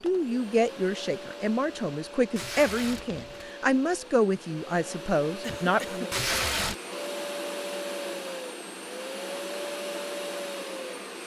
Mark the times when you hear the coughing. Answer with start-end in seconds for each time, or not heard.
5.4-6.2.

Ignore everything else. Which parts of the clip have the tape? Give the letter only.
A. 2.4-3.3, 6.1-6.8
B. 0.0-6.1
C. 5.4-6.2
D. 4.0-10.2
A.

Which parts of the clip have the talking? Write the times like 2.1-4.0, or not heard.
0.0-6.1.